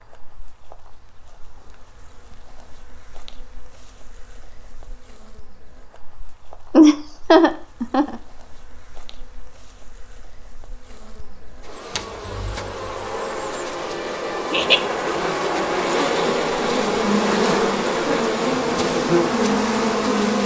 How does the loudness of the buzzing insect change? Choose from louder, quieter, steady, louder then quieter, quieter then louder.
louder.